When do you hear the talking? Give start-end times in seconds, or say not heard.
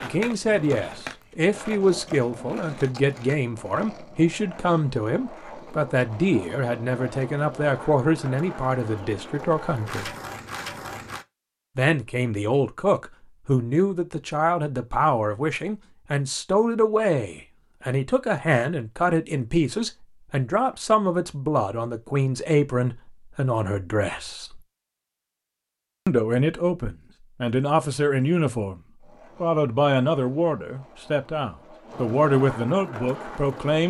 0.0-10.2, 11.8-24.6, 26.1-28.8, 29.4-33.8.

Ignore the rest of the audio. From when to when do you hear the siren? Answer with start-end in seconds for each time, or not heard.
not heard.